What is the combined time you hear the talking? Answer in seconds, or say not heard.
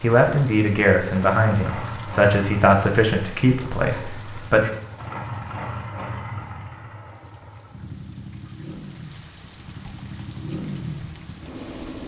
5 s.